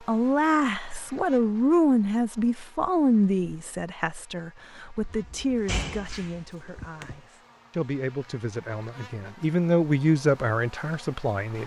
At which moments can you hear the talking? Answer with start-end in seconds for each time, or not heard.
0.1-11.6.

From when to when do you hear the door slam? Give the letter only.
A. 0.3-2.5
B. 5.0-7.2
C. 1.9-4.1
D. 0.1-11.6
B.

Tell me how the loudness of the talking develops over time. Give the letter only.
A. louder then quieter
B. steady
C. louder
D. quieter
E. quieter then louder
E.